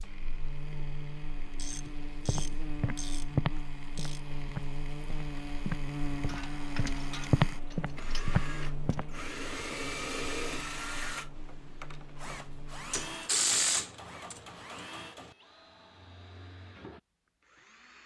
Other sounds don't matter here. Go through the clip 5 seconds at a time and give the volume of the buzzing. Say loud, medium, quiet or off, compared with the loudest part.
loud, loud, medium, off.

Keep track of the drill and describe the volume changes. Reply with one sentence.
The loudness of the drill goes up, then down.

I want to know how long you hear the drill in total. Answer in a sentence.
The drill can be heard for 18 seconds in total.